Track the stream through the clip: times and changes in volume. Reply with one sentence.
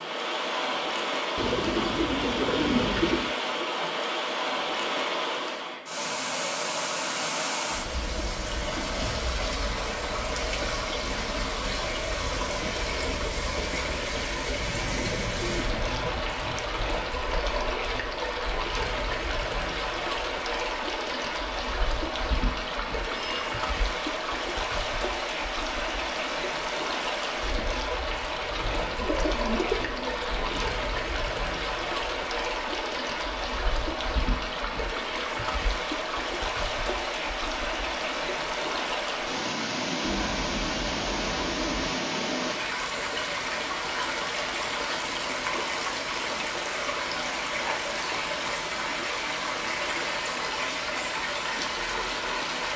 The stream can be heard from 0.0 to 52.7 s, at a steady volume.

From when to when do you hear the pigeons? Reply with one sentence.
You can hear the pigeons from 1.4 to 3.4 s, from 14.6 to 16.6 s, from 28.6 to 30.6 s and from 40.0 to 42.0 s.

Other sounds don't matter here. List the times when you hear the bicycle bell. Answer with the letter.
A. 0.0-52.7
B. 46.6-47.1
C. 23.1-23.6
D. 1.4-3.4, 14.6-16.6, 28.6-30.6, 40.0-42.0
C.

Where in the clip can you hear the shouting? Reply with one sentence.
You can't hear the shouting here.